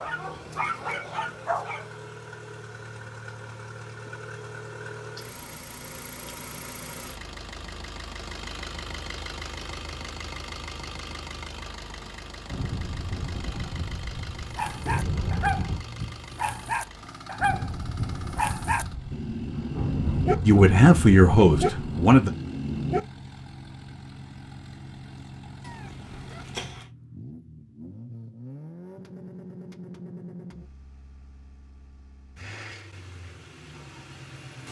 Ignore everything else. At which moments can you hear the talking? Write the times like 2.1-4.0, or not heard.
20.4-22.3.